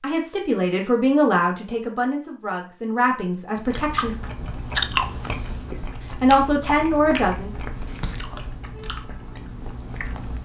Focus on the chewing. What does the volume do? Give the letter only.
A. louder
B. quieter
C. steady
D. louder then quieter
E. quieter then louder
B.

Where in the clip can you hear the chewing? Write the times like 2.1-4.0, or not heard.
3.5-10.3.